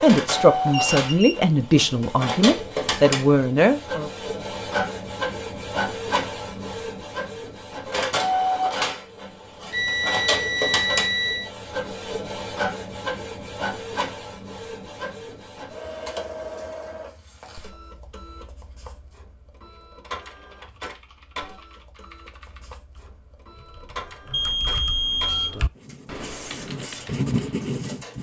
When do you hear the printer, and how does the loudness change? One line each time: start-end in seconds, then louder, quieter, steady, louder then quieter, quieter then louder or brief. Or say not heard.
0.0-28.1 quieter.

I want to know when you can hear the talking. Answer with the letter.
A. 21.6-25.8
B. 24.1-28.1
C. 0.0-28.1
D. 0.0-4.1
D.